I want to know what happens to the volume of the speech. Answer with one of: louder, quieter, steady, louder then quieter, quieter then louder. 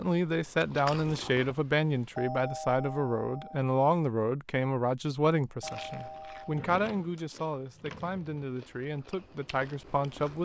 quieter.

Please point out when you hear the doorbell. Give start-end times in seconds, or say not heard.
2.1-3.6, 5.6-6.7.